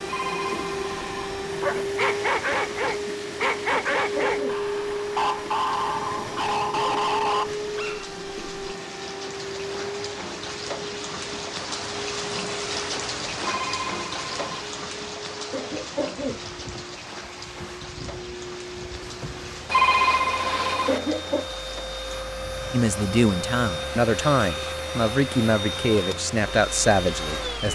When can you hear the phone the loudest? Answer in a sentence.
The volume of the phone peaks at 20 seconds.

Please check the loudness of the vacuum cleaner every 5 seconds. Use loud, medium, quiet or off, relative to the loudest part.
loud, loud, medium, medium, loud, loud.